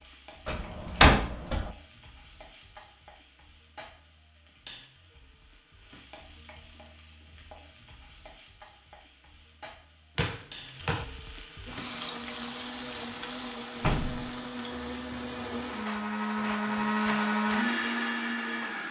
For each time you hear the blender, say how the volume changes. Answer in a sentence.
You can hear the blender from 11.7 to 18.8 s, getting louder.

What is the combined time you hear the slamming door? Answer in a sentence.
The slamming door can be heard for 3 seconds in total.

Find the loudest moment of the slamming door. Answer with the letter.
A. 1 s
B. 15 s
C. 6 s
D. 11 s
A.